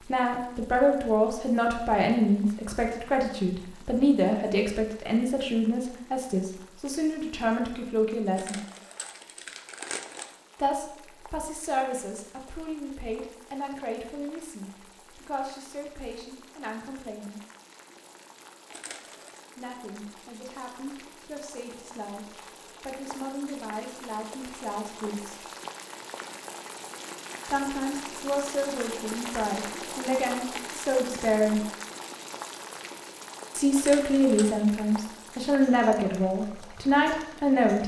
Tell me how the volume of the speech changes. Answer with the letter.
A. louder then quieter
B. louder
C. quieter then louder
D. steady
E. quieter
C.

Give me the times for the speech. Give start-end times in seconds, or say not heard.
0.1-8.6, 10.6-17.4, 19.6-25.4, 27.4-31.6, 33.5-37.8.